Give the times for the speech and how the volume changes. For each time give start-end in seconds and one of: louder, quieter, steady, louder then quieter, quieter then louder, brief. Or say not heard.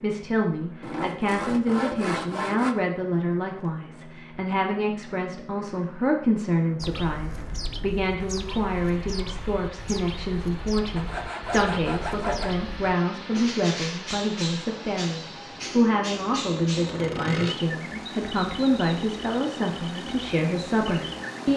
0.0-21.5 steady.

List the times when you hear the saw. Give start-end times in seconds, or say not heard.
0.8-2.8, 10.9-12.7, 16.9-17.6.